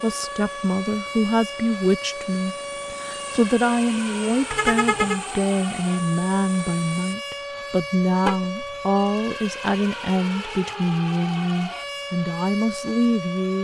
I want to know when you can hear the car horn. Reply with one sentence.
The car horn can be heard from 4.5 to 5.2 s and from 8.2 to 8.8 s.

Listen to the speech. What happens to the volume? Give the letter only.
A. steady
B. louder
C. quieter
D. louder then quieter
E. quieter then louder
A.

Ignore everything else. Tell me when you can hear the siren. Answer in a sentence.
The siren can be heard from 0.0 to 13.5 s.